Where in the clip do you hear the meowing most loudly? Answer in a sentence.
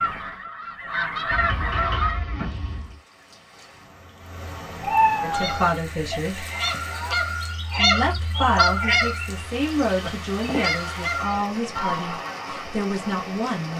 The volume of the meowing peaks at 5 seconds.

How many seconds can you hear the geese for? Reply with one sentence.
You can hear the geese for 10 seconds altogether.